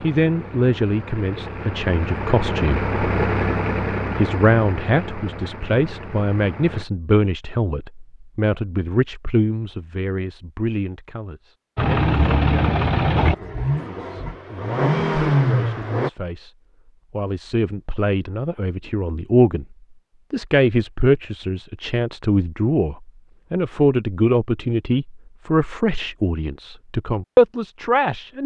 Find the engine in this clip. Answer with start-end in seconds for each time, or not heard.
0.0-6.8, 11.8-16.1.